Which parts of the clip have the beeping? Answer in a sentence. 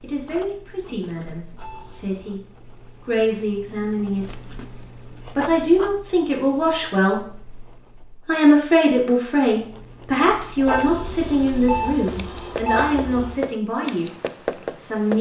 You can hear the beeping from 1.6 to 2.4 s and from 10.7 to 13.4 s.